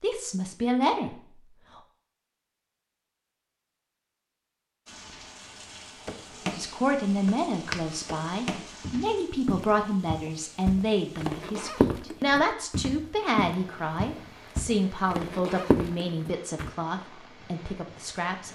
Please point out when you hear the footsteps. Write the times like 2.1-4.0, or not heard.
6.0-16.8.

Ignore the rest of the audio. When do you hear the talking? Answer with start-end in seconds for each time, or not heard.
0.0-1.8, 6.5-18.5.